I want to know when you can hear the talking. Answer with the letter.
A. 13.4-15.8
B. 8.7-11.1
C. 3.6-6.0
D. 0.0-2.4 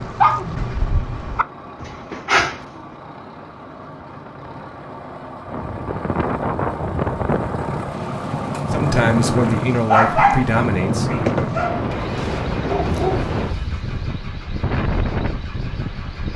B.